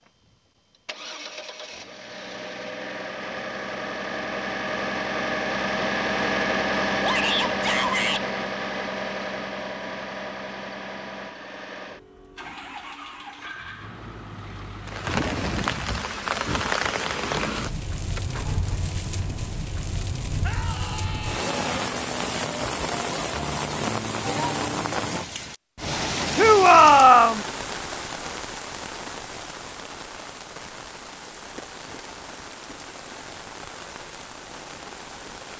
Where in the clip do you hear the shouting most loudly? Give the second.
27 s.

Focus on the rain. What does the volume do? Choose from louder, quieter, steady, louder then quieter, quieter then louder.
quieter.